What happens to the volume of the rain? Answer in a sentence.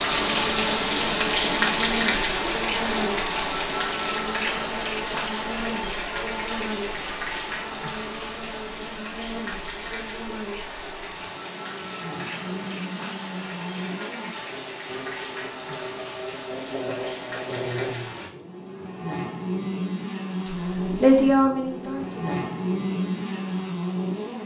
The volume of the rain goes down.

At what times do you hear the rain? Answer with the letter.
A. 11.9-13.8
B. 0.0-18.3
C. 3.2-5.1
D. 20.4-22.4
B.